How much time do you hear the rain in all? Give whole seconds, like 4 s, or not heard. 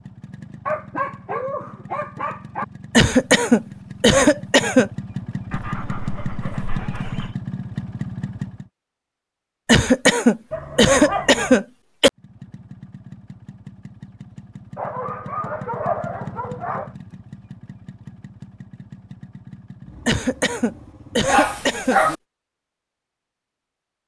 not heard.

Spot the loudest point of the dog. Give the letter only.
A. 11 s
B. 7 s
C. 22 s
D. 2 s
C.